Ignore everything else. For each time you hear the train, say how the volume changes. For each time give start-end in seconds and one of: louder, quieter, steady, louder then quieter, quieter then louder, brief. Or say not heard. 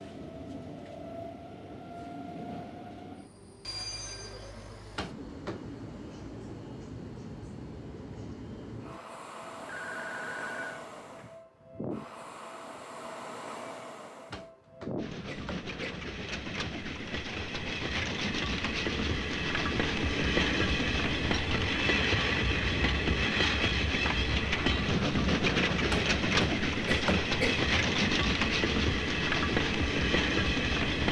0.0-31.0 louder.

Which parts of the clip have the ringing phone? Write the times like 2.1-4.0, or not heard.
9.4-11.3.